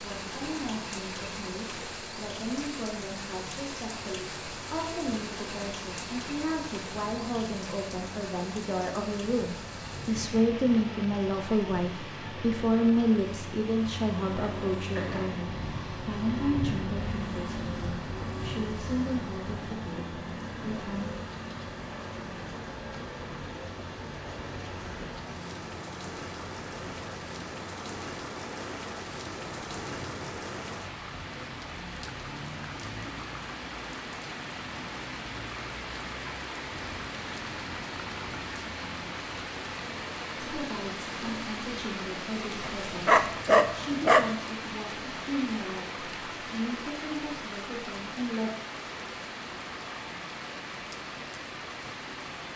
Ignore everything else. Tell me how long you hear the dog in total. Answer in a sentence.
You can hear the dog for 2 seconds altogether.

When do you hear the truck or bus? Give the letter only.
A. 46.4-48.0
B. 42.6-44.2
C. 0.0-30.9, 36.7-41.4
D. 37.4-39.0
C.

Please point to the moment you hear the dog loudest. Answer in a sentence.
The loudest moment of the dog is at 44 seconds.